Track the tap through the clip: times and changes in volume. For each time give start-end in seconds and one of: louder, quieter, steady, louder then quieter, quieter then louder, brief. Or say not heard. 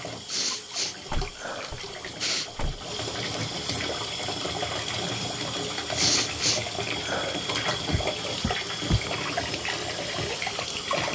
0.0-11.0 louder.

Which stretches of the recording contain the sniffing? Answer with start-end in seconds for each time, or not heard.
0.2-2.5, 6.0-7.5.